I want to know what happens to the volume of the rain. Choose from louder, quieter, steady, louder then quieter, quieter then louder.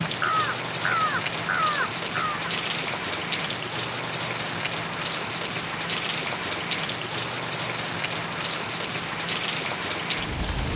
steady.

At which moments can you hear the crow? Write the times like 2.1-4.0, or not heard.
0.2-2.5.